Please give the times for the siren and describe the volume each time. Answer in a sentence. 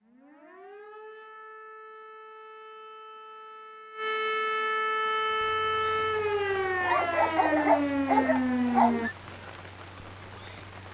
The siren can be heard from 0.0 to 9.1 s, getting louder.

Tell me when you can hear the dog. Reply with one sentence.
You can hear the dog from 6.8 to 9.2 s.